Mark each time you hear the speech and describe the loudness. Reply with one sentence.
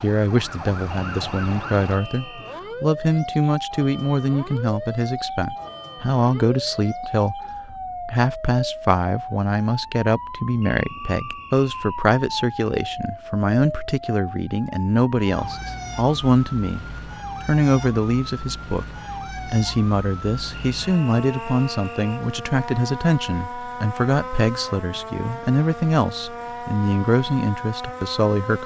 You can hear the speech from 0.0 to 28.6 s, at a steady volume.